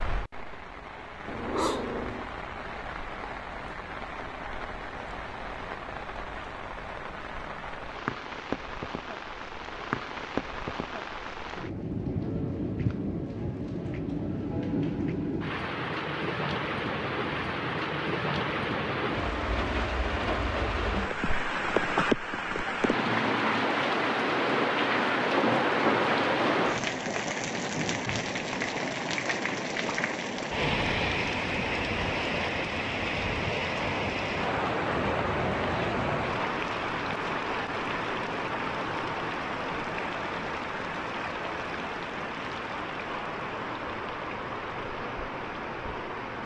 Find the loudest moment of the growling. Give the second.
2 s.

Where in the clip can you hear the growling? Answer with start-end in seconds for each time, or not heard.
1.2-2.3, 34.9-36.1.